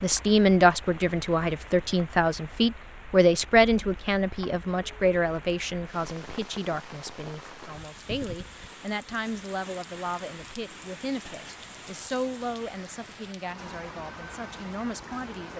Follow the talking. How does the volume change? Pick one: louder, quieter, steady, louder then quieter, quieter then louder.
quieter.